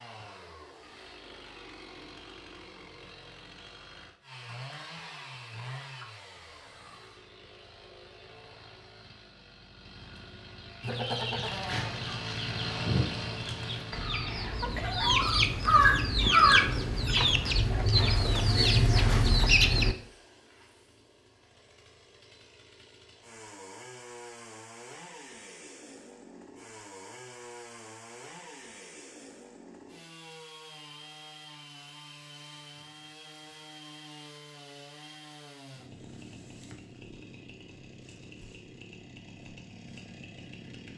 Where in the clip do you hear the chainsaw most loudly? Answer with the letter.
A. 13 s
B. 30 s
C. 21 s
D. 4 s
A.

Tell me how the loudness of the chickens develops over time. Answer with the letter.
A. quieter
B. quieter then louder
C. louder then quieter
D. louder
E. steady
D.